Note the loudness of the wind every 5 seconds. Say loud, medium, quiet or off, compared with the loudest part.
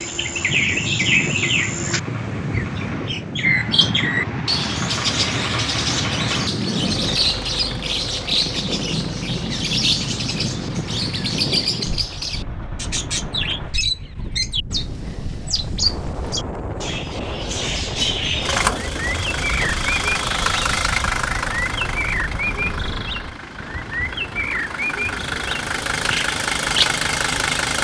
loud, loud, loud, loud, medium, medium.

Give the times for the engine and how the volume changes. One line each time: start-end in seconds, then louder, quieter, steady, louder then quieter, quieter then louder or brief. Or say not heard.
0.0-13.8 louder then quieter
18.4-27.7 quieter then louder.